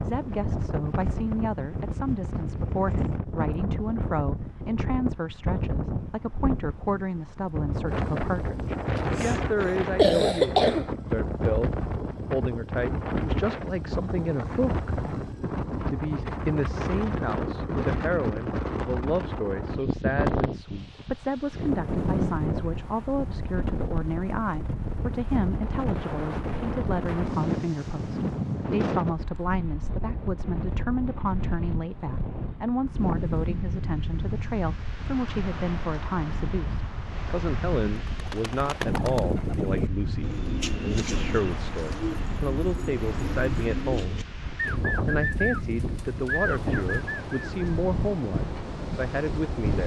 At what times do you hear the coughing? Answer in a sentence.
You can hear the coughing from 8.9 to 10.9 s.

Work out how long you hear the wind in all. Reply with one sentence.
You can hear the wind for 50 seconds altogether.